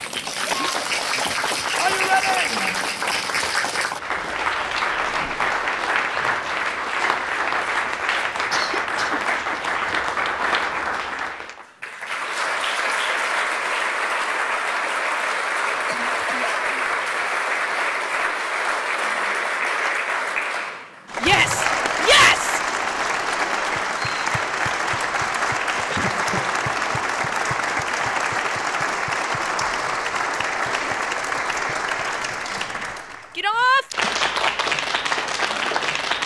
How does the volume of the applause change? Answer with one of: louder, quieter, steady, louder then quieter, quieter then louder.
steady.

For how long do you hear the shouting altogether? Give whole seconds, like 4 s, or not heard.
3 s.